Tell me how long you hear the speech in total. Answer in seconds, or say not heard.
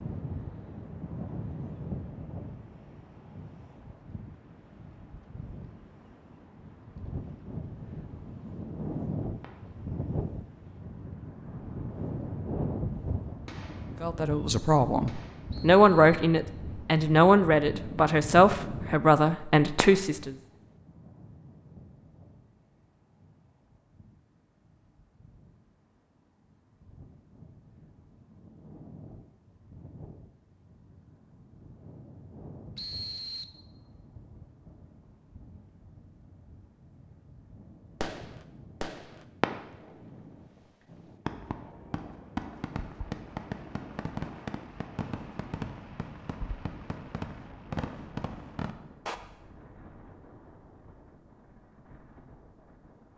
6 s.